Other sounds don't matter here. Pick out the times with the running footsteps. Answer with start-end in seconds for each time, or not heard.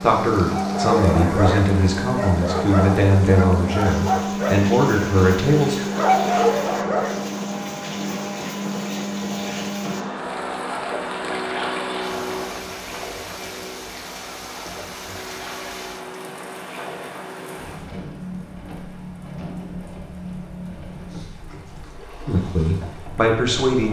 not heard.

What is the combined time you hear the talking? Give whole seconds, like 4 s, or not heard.
7 s.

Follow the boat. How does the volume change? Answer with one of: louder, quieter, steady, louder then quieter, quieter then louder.
quieter.